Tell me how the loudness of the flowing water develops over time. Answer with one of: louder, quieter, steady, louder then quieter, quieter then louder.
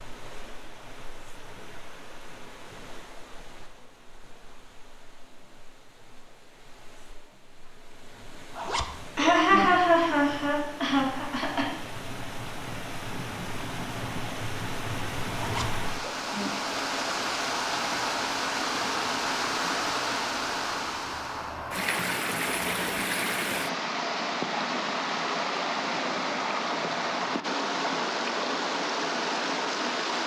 louder.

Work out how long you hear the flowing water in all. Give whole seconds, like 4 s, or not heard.
30 s.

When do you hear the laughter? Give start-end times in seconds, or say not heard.
9.2-11.7.